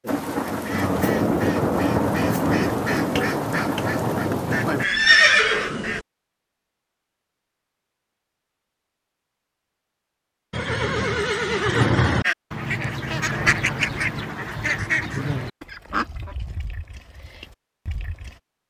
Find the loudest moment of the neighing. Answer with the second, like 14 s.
5 s.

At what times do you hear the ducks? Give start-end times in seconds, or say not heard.
0.0-6.0, 12.2-18.4.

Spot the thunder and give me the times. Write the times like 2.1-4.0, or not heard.
0.1-4.8.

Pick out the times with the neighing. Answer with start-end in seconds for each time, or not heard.
4.8-6.0, 10.5-12.2.